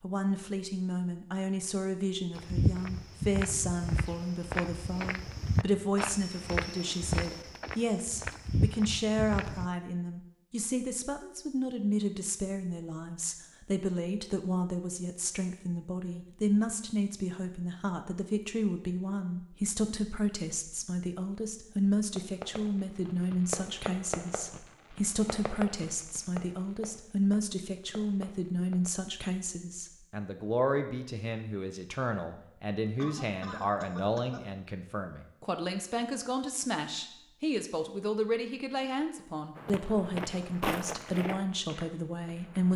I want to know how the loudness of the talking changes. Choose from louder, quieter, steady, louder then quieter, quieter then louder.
steady.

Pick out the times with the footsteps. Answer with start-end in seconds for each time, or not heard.
2.4-9.7, 39.5-42.7.